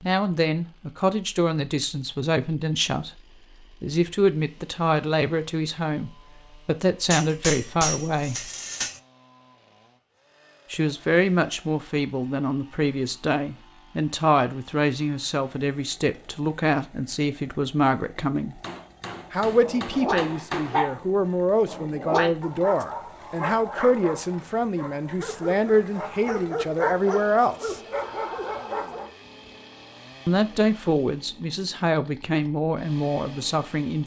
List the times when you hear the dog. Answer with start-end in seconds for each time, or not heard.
19.6-29.1.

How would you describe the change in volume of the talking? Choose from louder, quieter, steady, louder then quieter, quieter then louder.
steady.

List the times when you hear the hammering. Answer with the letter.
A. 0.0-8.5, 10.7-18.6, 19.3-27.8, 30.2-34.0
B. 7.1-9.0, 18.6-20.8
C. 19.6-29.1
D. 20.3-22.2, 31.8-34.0
B.